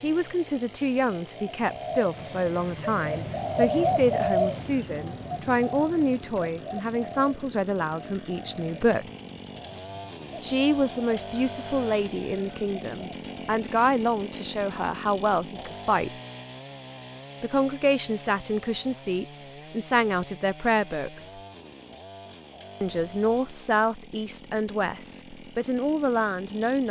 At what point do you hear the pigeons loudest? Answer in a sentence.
The loudest moment of the pigeons is at 4 seconds.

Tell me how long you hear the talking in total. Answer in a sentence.
You can hear the talking for 23 seconds altogether.